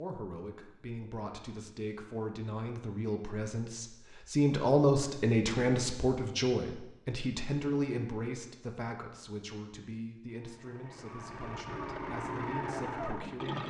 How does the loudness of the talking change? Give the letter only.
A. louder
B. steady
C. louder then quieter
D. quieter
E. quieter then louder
C.